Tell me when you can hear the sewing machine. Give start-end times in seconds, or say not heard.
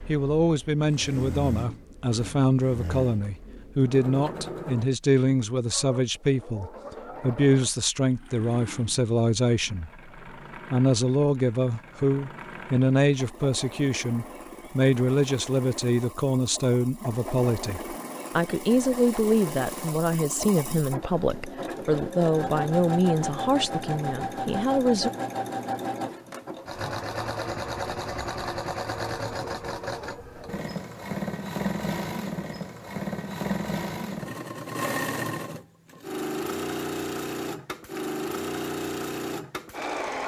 0.0-40.2.